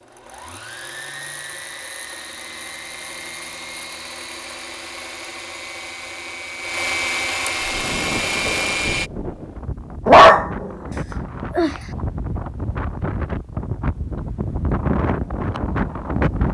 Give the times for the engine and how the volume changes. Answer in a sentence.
You can hear the engine from 0.0 to 9.1 s, getting louder.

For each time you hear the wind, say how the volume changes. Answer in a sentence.
You can hear the wind from 7.5 to 16.4 s, getting louder.